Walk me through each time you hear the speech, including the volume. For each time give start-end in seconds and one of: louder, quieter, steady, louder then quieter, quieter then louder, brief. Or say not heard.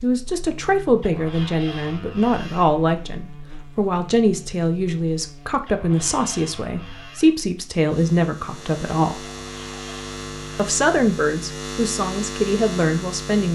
0.0-9.2 steady
10.6-13.5 brief.